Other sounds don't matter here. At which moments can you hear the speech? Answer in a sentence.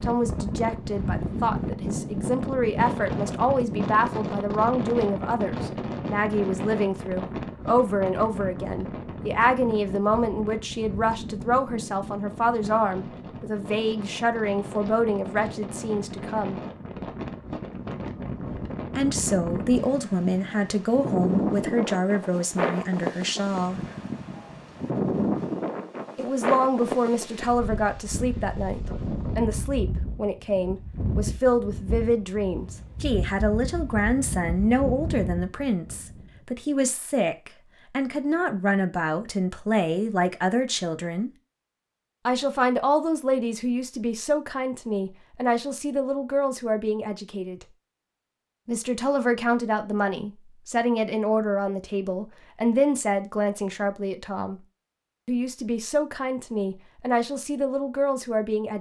You can hear the speech from 0.0 to 16.6 s, from 18.9 to 23.8 s, from 26.1 to 41.3 s, from 42.2 to 47.6 s, from 48.6 to 54.6 s and from 55.2 to 58.7 s.